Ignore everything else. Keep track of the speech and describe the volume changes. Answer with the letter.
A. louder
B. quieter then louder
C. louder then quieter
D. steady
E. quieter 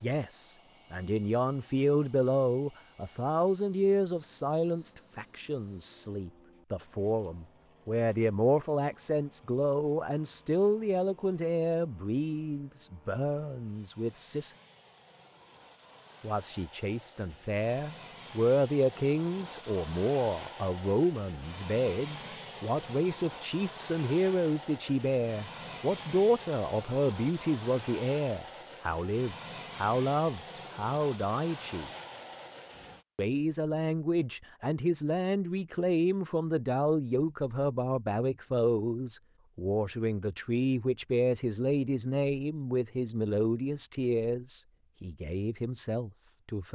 D.